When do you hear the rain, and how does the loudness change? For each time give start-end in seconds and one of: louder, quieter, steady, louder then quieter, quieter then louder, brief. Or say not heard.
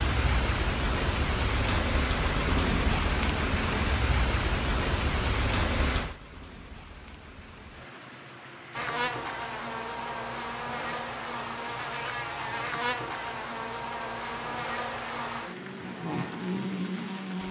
0.0-17.4 quieter.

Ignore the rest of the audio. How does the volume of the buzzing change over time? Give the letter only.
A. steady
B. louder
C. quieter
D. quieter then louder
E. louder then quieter
A.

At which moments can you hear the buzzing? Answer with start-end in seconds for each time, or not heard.
8.7-17.4.